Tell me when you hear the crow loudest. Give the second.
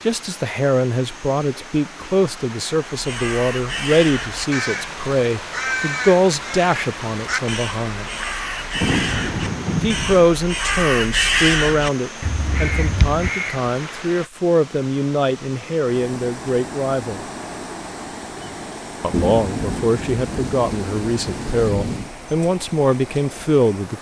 11 s.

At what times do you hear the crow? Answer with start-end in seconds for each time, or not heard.
2.9-13.7.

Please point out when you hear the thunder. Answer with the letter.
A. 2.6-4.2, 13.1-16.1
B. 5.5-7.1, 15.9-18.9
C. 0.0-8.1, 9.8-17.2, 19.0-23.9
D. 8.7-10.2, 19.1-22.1
D.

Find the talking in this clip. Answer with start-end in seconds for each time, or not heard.
0.0-8.1, 9.8-17.2, 19.0-23.9.